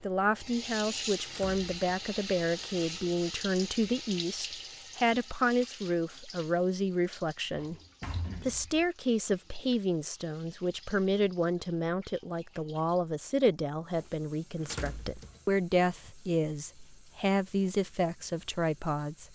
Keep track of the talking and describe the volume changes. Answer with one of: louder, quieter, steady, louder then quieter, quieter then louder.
steady.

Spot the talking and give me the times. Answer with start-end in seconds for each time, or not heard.
0.0-7.8, 8.4-19.3.